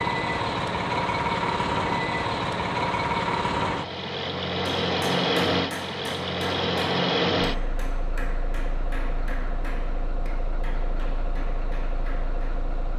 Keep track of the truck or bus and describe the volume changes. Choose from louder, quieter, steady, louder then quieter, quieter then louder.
quieter.